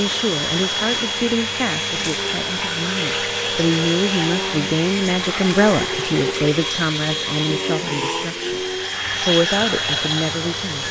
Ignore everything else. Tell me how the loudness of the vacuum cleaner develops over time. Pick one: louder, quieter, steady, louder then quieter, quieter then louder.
steady.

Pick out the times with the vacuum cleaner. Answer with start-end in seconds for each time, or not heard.
0.0-10.8.